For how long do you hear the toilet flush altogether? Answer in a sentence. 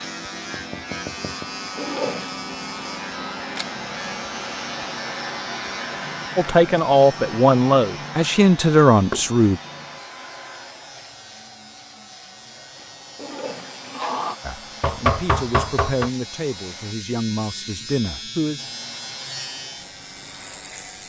You can hear the toilet flush for 2 seconds altogether.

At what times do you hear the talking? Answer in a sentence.
The talking can be heard from 6.3 to 9.6 s and from 14.4 to 18.6 s.